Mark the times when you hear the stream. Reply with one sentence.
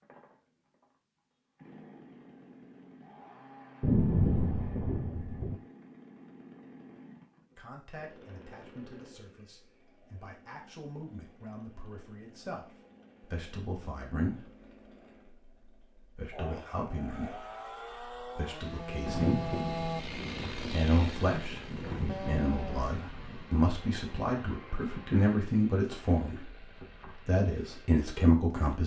You can't hear the stream here.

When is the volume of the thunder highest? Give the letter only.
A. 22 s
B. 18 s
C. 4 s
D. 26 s
C.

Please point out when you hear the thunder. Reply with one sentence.
You can hear the thunder from 3.8 to 5.6 s and from 19.1 to 23.5 s.